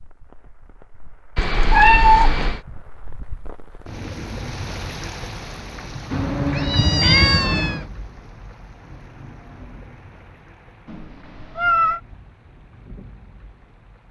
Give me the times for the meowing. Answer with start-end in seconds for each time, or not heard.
1.4-2.6, 6.1-7.8, 10.8-12.0.